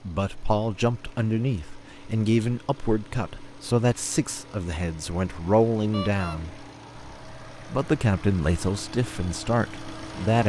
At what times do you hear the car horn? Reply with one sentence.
The car horn can be heard from 5.9 to 6.4 s.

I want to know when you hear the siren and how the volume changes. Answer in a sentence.
You can't hear the siren here.